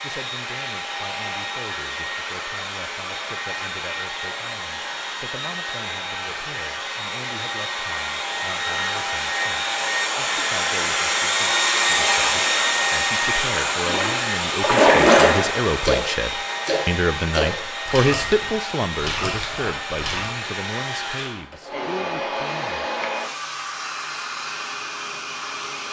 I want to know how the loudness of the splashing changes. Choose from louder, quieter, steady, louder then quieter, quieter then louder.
quieter.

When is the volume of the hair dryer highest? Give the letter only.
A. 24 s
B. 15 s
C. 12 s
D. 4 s
C.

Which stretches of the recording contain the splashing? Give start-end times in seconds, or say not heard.
13.8-20.3.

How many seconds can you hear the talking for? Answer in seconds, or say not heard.
23 s.